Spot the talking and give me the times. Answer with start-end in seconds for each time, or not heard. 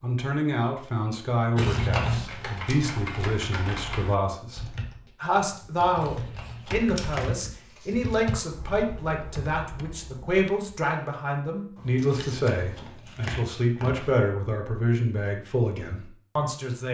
0.0-16.8.